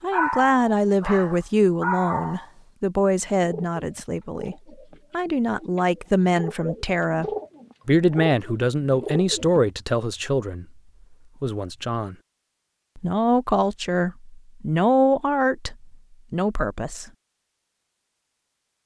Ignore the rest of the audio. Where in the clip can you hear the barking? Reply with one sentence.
The barking can be heard from 0.1 to 2.5 s.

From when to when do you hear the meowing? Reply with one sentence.
You can't hear the meowing here.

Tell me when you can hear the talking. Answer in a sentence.
The talking can be heard from 0.0 to 10.8 s, from 11.4 to 12.2 s and from 12.9 to 17.1 s.